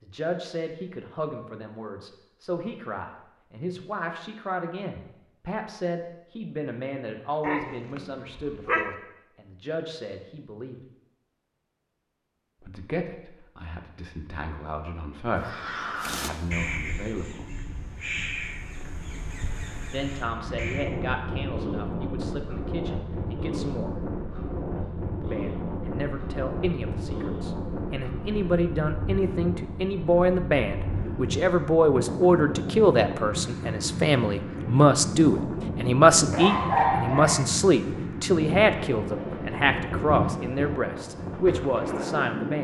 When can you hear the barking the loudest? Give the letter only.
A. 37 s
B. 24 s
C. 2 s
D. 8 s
A.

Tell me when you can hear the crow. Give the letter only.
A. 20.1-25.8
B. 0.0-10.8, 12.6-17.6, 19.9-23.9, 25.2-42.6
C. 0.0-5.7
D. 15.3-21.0
D.